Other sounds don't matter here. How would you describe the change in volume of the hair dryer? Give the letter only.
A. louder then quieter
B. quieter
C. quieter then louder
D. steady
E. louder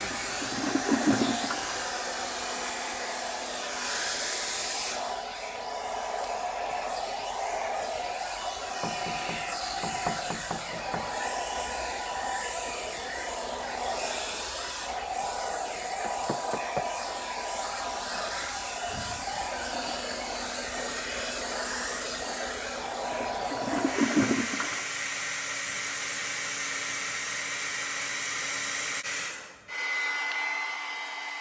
D.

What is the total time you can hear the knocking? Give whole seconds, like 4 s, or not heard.
3 s.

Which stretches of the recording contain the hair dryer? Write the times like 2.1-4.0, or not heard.
0.0-31.3.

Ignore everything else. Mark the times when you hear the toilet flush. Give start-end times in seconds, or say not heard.
0.0-1.9, 23.1-24.9.